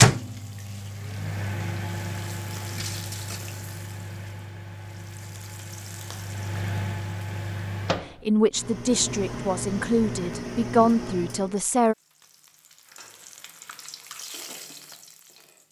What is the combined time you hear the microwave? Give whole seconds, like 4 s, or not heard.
12 s.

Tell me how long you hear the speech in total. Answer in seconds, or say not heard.
4 s.